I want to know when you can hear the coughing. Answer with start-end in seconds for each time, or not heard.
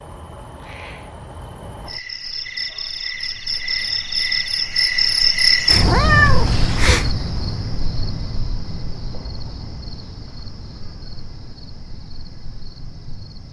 not heard.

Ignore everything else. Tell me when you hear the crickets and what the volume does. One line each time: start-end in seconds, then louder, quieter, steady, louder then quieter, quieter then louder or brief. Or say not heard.
0.0-13.4 louder then quieter.